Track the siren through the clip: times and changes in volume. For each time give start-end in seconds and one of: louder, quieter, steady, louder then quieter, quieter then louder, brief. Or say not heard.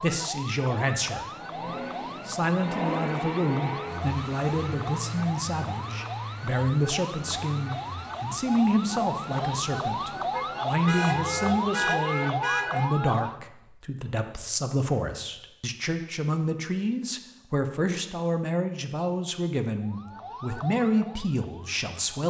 0.0-13.4 louder
19.7-22.0 brief.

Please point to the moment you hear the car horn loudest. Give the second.
12 s.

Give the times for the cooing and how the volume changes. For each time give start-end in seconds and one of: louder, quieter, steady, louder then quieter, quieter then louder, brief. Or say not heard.
not heard.